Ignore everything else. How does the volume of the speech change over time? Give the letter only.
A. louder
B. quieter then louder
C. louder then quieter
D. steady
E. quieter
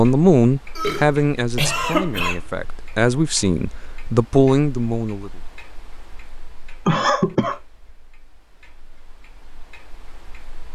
B.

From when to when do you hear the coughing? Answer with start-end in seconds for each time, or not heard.
0.8-2.4, 6.8-7.6.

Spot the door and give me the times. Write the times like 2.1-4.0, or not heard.
not heard.